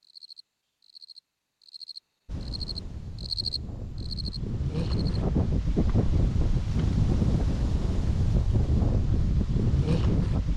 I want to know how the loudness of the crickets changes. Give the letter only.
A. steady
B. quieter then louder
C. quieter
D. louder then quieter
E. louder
D.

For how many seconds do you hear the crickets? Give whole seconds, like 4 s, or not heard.
5 s.